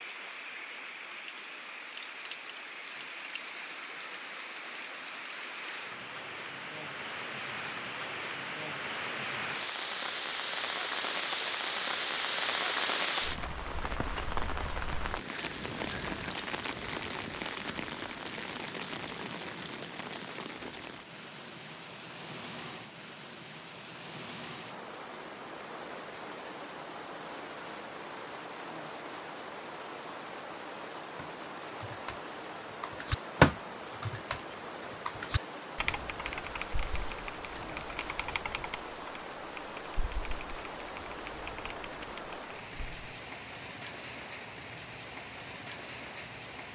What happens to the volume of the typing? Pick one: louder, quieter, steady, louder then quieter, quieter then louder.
quieter.